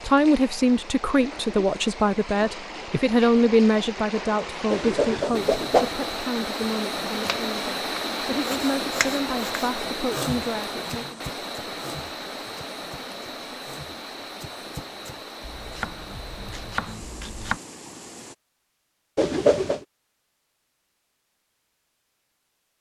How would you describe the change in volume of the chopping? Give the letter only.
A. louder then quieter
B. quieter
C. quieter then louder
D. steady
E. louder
C.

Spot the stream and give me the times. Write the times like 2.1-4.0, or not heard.
0.0-18.4.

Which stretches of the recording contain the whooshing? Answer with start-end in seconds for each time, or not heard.
4.7-6.0, 19.1-19.8.